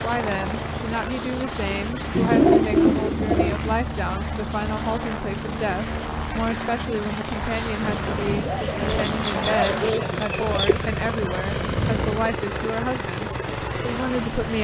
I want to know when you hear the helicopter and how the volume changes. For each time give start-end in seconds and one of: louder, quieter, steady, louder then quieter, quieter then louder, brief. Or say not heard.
0.0-14.5 steady.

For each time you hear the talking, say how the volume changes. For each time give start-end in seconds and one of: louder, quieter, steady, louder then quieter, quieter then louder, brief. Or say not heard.
0.0-14.5 steady.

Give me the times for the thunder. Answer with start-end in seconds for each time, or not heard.
7.8-12.3.